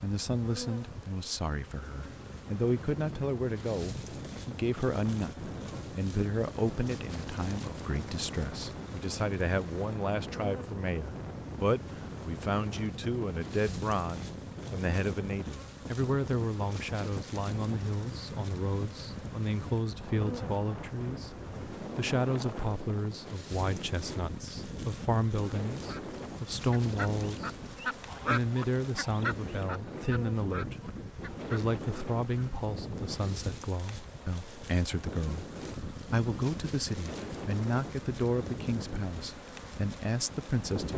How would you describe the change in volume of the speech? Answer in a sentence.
The loudness of the speech stays about the same.